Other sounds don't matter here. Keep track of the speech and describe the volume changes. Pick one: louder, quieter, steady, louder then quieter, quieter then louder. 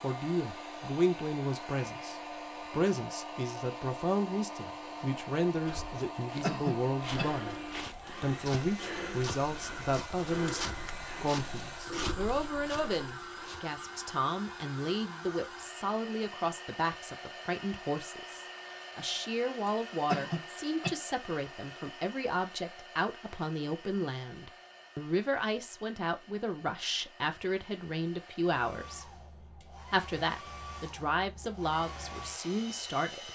steady.